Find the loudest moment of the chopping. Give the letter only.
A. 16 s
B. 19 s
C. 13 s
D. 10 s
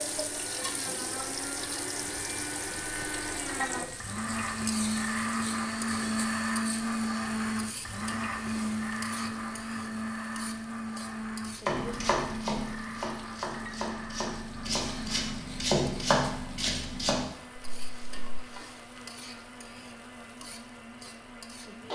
A.